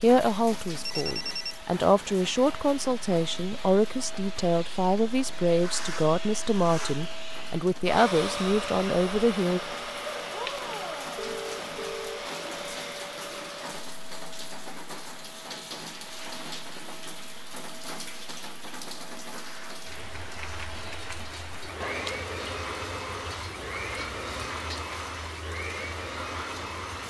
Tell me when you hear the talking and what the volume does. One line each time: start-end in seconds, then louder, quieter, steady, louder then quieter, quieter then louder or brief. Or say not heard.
0.0-9.6 steady.